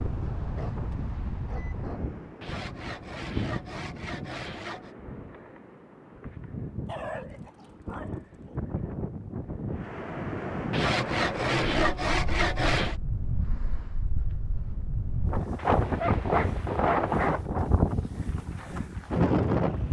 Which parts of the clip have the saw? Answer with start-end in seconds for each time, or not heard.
2.4-5.0, 10.7-12.9.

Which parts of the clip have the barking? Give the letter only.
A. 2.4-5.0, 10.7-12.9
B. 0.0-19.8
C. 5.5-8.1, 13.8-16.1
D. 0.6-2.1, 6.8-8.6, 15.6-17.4
D.